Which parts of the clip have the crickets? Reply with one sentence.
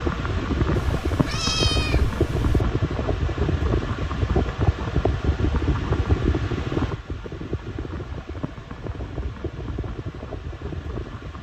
You can't hear the crickets here.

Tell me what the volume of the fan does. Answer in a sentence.
The volume of the fan goes down.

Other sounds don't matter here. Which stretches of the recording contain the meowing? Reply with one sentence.
You can hear the meowing from 0.8 to 2.6 s.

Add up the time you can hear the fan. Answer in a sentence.
The fan can be heard for 11 seconds in total.